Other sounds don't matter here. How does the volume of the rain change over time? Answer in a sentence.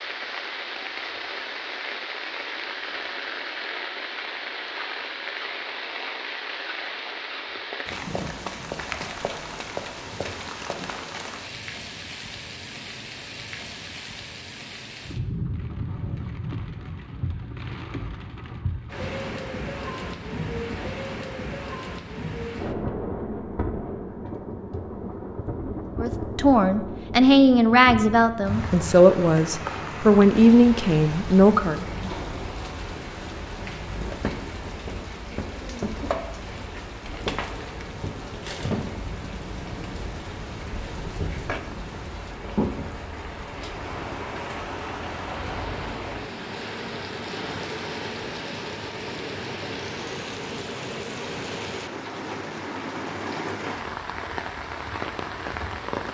The volume of the rain stays about the same.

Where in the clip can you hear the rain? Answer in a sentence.
The rain can be heard from 0.0 to 56.0 s.